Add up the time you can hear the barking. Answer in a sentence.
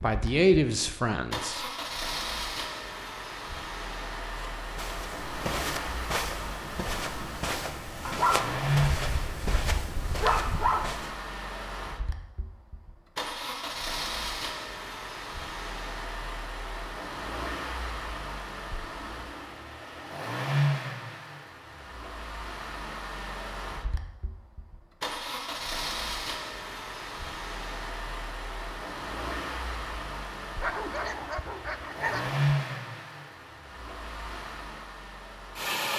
You can hear the barking for 5 seconds altogether.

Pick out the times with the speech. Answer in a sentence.
You can hear the speech from 0.0 to 1.7 s.